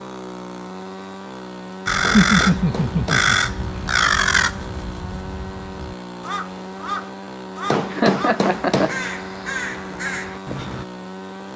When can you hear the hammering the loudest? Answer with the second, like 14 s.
8 s.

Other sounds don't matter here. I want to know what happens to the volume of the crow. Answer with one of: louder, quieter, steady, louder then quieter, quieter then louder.
quieter.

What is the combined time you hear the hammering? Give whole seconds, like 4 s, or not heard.
3 s.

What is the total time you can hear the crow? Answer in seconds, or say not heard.
9 s.